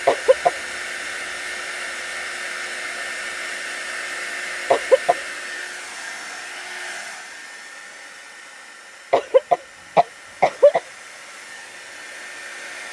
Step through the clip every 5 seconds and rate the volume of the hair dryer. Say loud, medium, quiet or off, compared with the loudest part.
loud, medium, medium.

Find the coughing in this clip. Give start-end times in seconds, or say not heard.
0.1-0.5, 4.7-5.2, 9.1-10.8.